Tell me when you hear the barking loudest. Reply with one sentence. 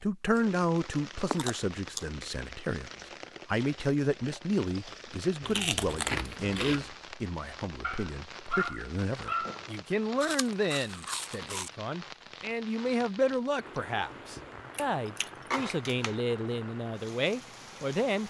The loudest moment of the barking is at 9 seconds.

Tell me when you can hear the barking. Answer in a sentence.
You can hear the barking from 7.8 to 9.8 s.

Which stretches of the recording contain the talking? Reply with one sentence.
The talking can be heard from 0.0 to 18.2 s.